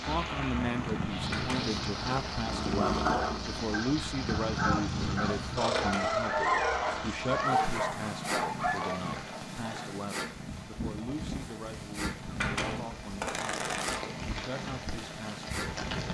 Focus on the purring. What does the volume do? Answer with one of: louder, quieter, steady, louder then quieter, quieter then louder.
quieter.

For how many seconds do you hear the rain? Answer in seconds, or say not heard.
16 s.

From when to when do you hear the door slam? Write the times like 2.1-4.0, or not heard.
not heard.